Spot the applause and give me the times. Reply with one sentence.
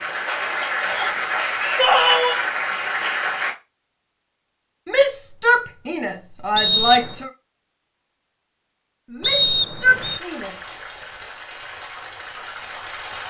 You can hear the applause from 0.0 to 3.5 s and from 9.8 to 13.2 s.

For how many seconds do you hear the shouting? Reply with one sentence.
You can hear the shouting for 5 seconds altogether.